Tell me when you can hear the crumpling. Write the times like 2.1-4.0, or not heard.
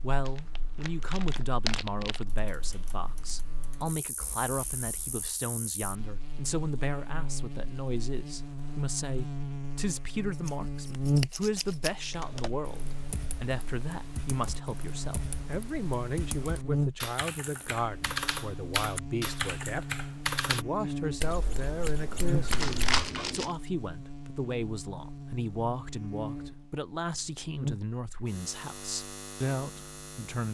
0.2-2.2, 22.5-23.6.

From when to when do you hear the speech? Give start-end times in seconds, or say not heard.
0.0-30.5.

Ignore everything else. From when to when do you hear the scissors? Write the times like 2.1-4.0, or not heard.
10.4-11.9, 21.2-23.1.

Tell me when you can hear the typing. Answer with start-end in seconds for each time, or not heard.
2.2-5.3, 12.1-20.6.